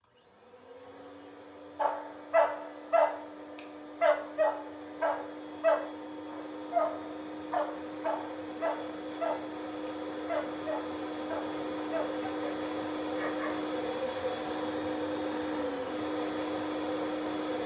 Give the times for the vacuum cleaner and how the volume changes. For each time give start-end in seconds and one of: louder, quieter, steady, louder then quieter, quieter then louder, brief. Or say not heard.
0.0-17.6 louder.